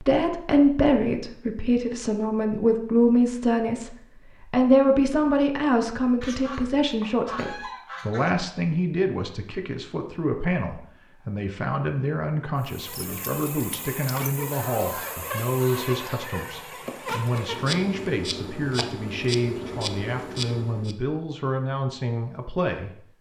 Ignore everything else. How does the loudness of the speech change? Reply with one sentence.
The loudness of the speech goes down.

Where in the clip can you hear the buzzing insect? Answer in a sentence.
The buzzing insect can be heard from 12.6 to 20.9 s.